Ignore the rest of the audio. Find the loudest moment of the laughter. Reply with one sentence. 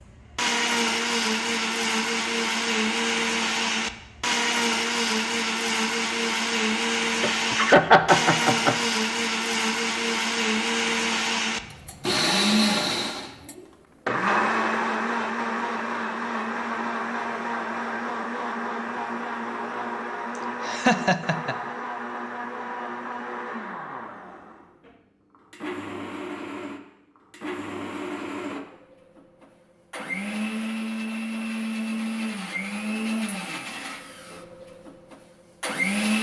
The volume of the laughter peaks at 8 seconds.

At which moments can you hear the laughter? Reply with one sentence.
You can hear the laughter from 7.2 to 8.8 s and from 20.4 to 21.6 s.